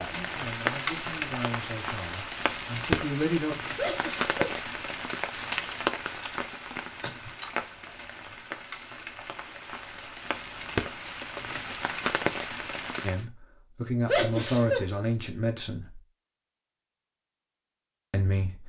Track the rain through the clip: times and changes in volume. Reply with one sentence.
You can hear the rain from 0.0 to 13.2 s, getting quieter then louder.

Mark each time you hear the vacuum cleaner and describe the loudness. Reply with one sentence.
You can't hear the vacuum cleaner here.